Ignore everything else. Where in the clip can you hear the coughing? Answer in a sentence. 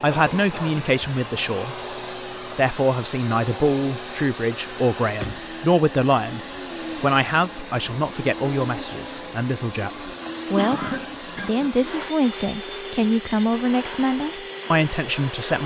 The coughing can be heard from 0.1 to 0.8 s and from 10.6 to 11.7 s.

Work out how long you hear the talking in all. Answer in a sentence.
The talking can be heard for 14 seconds in total.